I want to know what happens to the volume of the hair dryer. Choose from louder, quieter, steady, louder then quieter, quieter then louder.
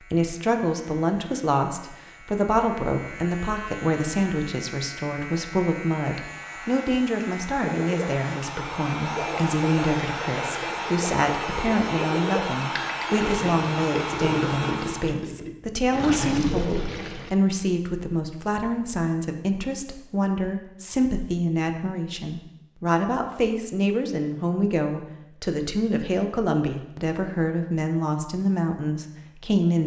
louder.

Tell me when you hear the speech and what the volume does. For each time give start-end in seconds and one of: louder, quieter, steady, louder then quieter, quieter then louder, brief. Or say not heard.
0.0-29.8 steady.